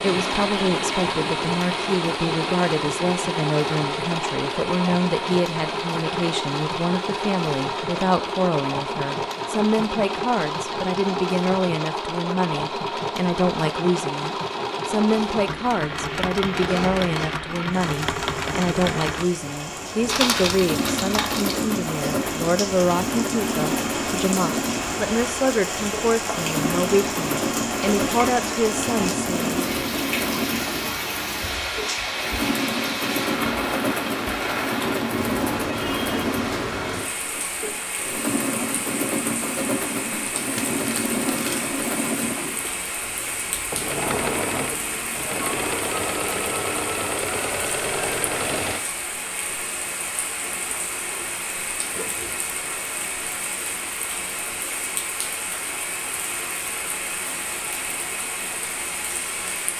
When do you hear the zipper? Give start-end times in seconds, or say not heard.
16.6-17.3, 50.4-52.4.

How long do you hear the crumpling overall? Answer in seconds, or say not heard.
3 s.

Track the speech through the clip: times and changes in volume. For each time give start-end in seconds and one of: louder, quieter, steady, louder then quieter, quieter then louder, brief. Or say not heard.
0.0-29.6 steady.